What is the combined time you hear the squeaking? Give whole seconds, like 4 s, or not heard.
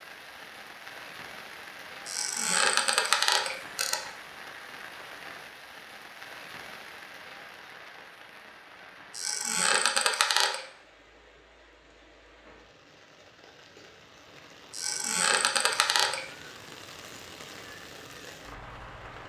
5 s.